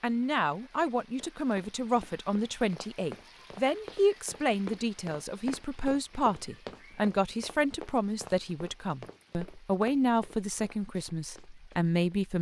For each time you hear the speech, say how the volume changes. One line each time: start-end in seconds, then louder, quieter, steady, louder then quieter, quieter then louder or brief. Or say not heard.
0.0-12.3 steady.